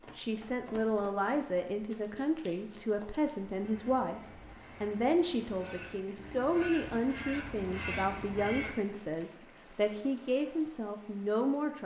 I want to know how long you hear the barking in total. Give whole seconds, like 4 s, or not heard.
not heard.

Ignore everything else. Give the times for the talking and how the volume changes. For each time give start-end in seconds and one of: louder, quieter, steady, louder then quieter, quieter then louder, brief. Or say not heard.
0.1-11.8 steady.